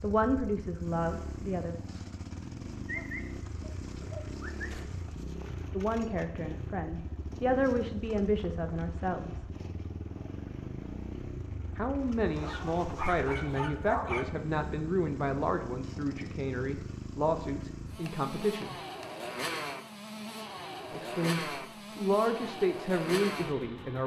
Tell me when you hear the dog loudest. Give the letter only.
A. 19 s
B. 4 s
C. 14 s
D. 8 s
C.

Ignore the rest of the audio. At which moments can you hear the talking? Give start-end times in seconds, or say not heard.
0.0-1.8, 5.7-9.4, 11.8-18.8, 20.9-24.0.